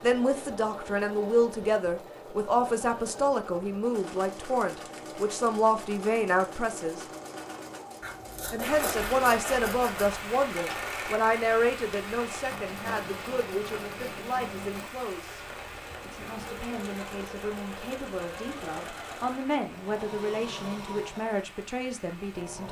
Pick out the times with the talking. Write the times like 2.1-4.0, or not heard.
0.0-7.0, 8.5-15.3, 16.1-22.6.